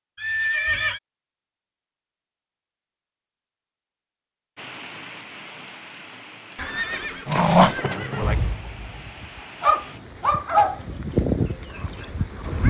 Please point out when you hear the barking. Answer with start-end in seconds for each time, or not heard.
7.2-12.6.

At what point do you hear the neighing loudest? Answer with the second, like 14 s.
1 s.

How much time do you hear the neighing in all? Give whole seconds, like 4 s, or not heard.
3 s.